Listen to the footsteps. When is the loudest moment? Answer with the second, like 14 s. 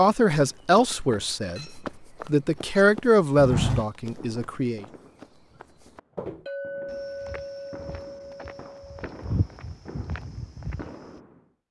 4 s.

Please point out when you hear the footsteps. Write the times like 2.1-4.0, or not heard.
0.4-10.9.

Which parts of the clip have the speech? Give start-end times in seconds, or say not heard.
0.0-4.8.